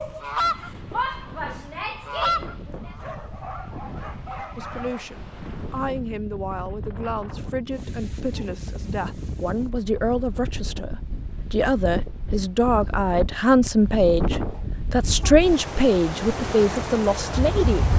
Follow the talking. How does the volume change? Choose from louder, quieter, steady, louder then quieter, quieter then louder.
louder.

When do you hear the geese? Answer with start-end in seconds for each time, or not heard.
0.0-3.0.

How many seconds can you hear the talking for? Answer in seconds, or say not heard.
13 s.